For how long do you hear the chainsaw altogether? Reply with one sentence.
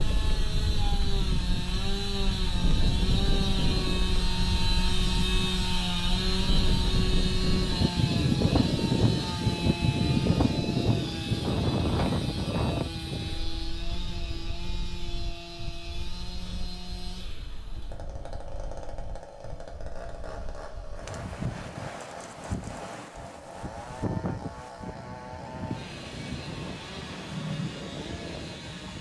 The chainsaw can be heard for 29 seconds in total.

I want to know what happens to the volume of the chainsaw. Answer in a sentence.
The volume of the chainsaw goes down.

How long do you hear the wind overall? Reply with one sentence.
The wind can be heard for 29 seconds in total.